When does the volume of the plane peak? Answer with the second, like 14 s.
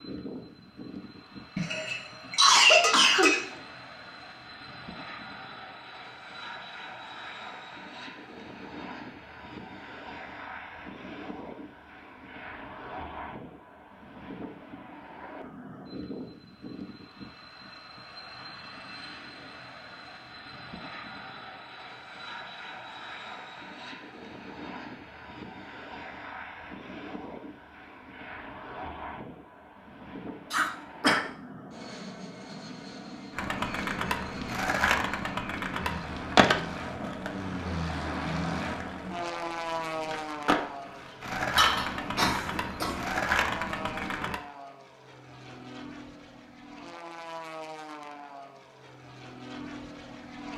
38 s.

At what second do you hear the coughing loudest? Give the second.
3 s.